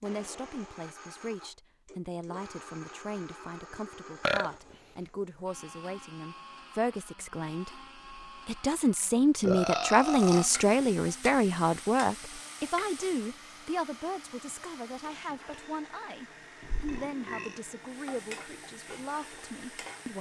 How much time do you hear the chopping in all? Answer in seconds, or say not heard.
not heard.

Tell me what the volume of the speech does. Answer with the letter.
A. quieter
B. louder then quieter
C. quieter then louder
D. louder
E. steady
B.